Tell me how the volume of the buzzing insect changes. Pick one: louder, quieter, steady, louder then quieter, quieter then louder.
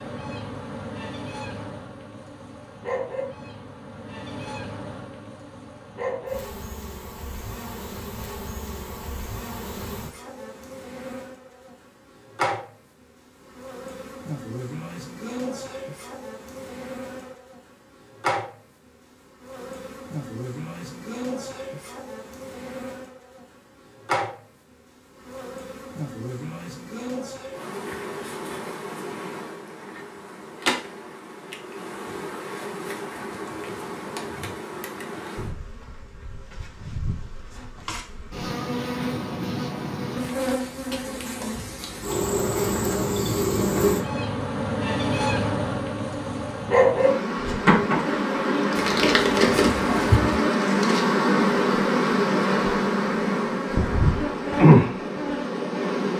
louder.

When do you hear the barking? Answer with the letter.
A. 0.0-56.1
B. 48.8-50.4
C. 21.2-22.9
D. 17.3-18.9
B.